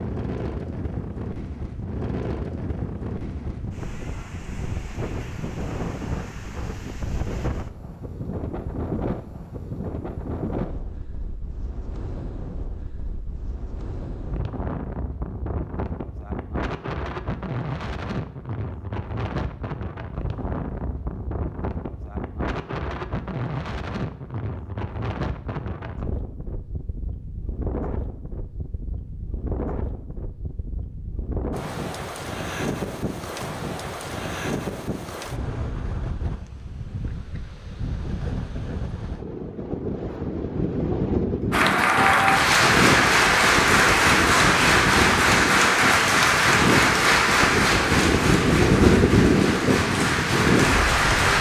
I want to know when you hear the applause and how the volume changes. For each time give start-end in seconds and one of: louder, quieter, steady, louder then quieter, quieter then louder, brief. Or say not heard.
41.5-51.3 quieter.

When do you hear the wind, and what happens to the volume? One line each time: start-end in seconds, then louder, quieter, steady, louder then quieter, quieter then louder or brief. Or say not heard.
0.0-51.3 louder.